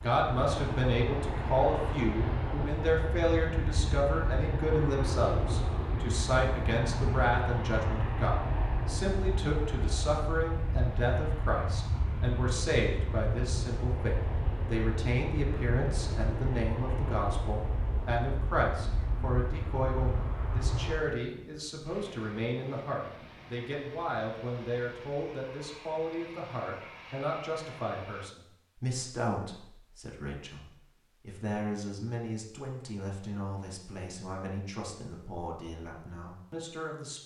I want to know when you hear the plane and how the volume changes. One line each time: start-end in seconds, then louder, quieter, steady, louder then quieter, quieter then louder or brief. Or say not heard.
0.0-28.4 quieter.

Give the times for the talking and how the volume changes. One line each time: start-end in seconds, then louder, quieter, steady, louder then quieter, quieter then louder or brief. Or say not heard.
0.0-37.2 quieter.